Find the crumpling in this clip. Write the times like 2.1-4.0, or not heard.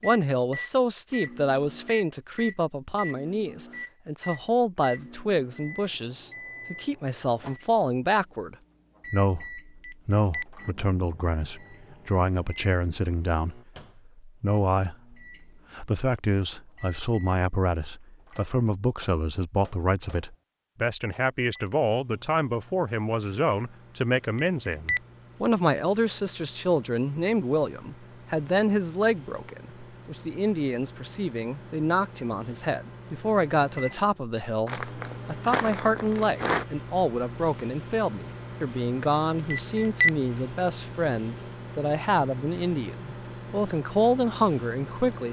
34.6-36.6.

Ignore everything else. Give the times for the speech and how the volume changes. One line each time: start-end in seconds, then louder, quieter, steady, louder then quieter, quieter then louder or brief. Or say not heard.
0.0-45.2 steady.